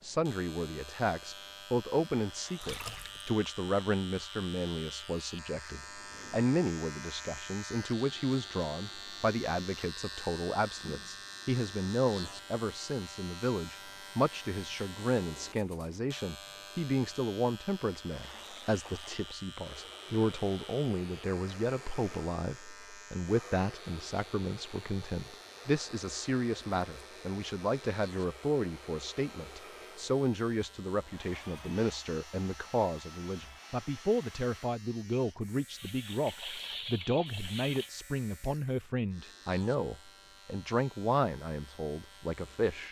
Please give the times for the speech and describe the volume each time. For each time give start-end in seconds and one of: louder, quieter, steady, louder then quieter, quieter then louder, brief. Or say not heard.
0.0-42.8 steady.